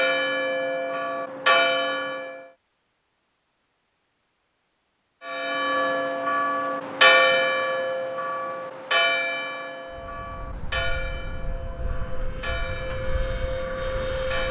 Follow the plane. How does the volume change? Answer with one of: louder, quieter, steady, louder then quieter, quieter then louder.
louder.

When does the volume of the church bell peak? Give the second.
7 s.